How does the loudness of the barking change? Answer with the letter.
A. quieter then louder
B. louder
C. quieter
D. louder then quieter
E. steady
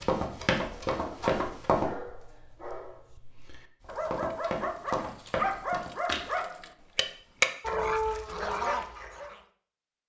B.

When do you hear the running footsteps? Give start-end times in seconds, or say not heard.
0.0-1.9, 3.9-6.4.